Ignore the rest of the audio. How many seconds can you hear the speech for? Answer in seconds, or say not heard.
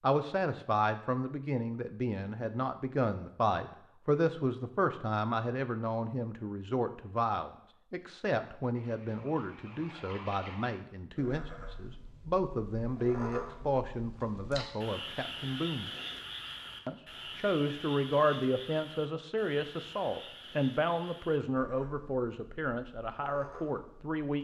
23 s.